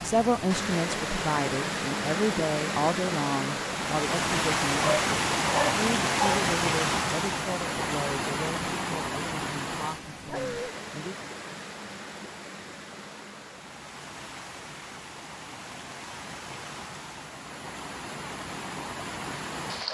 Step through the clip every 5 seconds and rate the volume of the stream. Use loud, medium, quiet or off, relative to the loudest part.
loud, loud, quiet, medium.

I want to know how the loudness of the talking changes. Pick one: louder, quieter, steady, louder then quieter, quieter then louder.
quieter.